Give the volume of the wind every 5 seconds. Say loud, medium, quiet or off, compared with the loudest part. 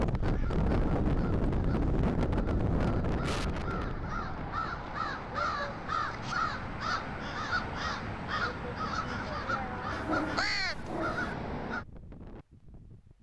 loud, quiet, quiet.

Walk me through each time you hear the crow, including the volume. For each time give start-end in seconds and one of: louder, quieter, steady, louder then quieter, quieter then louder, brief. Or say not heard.
0.1-11.8 louder.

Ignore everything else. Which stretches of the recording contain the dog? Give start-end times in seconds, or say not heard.
9.9-11.3.